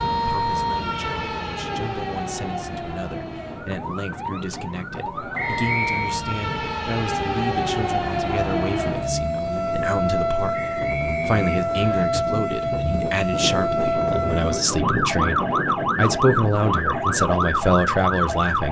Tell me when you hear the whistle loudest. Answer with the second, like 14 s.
6 s.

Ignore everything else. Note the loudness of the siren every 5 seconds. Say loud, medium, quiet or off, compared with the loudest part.
medium, loud, loud, loud.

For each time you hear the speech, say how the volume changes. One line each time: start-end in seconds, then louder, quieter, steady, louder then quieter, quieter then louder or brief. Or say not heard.
0.1-18.6 louder.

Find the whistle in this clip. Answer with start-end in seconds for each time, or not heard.
5.3-6.2, 10.5-12.1.